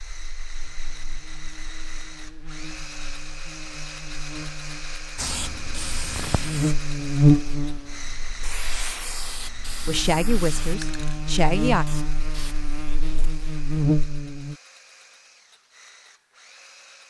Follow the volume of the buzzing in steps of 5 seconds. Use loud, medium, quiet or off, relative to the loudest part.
quiet, loud, medium, off.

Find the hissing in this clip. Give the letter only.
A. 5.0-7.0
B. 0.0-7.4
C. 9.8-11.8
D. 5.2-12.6
D.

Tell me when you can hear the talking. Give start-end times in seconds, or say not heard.
9.8-11.8.